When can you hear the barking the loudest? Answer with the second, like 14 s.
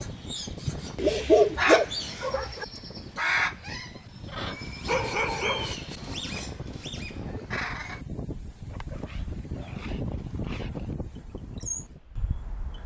1 s.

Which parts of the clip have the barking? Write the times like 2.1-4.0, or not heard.
0.7-2.6, 4.8-5.8, 8.7-10.9.